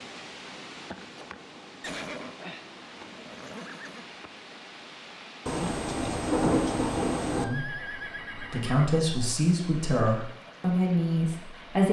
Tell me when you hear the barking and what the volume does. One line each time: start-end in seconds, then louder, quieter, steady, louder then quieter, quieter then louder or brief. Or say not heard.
not heard.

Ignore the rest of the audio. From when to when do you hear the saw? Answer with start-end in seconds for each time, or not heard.
not heard.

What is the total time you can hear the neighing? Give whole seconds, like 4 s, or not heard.
4 s.